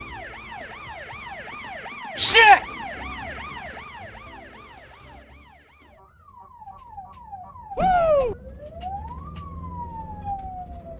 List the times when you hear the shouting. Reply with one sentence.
The shouting can be heard from 2.1 to 2.6 s and from 7.8 to 8.3 s.